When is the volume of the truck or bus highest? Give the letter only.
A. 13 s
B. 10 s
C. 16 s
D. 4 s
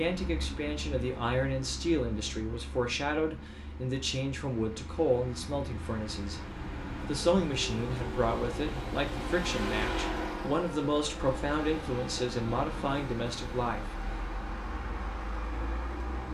B.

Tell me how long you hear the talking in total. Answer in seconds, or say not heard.
13 s.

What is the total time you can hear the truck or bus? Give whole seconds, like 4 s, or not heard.
16 s.